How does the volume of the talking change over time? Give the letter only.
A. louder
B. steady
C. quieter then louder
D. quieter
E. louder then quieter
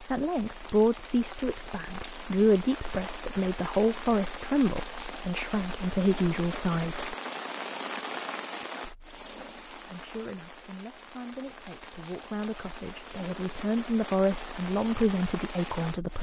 C.